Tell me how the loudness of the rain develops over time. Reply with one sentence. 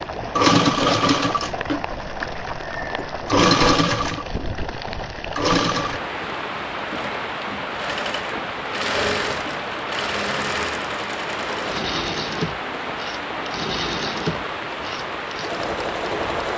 The loudness of the rain stays about the same.